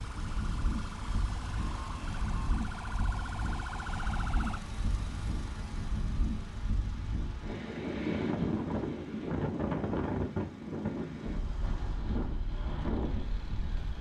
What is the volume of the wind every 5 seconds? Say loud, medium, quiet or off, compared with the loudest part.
medium, loud, loud.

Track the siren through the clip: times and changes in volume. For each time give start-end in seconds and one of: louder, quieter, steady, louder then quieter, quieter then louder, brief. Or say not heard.
0.0-4.6 louder.